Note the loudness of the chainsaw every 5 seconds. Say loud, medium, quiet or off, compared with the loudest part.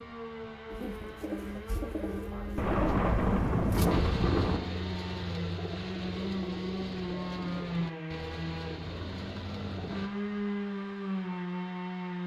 medium, loud, loud.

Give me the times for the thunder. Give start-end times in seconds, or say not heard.
2.5-4.6.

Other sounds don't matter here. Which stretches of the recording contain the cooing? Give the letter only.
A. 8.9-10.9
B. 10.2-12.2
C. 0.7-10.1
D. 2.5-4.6
C.